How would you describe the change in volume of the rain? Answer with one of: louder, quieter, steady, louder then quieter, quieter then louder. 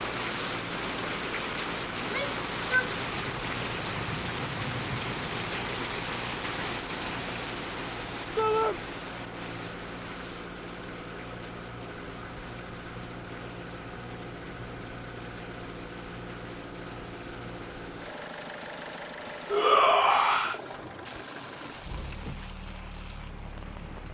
quieter.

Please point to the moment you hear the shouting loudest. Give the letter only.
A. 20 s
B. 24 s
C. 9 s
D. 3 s
A.